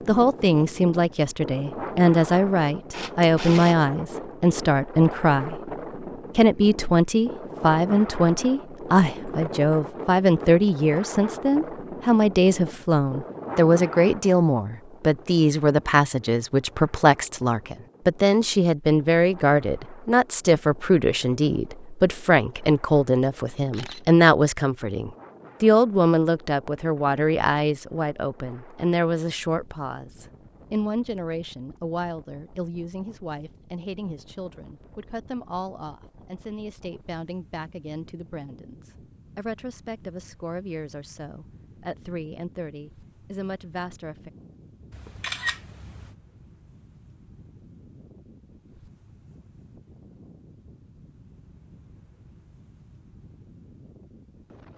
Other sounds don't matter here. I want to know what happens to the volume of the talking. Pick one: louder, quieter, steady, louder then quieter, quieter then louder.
quieter.